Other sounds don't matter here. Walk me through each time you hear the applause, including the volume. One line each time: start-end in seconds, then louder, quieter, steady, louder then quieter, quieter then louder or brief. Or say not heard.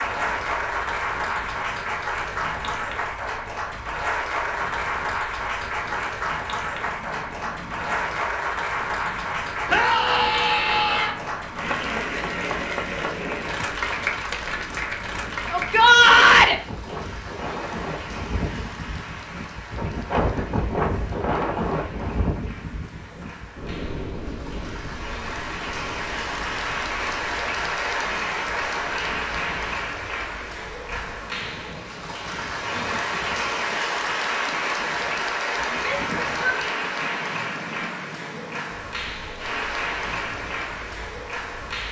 0.0-41.8 quieter then louder.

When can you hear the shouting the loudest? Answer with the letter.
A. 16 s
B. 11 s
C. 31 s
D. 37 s
A.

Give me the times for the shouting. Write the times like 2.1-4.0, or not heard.
9.7-11.2, 15.5-16.6, 35.7-36.6.